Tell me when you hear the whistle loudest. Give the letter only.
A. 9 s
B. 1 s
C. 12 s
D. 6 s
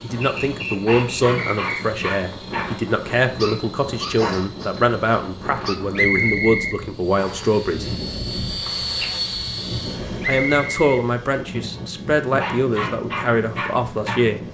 D.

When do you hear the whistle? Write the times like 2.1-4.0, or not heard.
0.2-1.8, 6.0-7.5, 10.2-11.1.